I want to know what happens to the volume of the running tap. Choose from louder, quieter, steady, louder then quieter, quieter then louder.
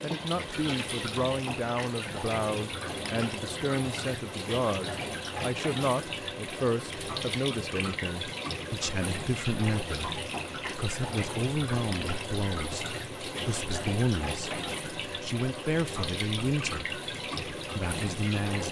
steady.